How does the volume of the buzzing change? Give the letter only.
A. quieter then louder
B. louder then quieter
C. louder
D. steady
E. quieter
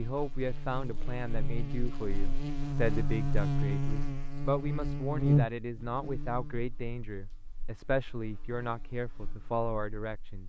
B.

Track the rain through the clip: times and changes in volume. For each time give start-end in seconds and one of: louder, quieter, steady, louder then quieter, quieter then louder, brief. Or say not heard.
not heard.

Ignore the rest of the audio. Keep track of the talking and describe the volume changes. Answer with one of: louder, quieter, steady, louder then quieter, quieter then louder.
steady.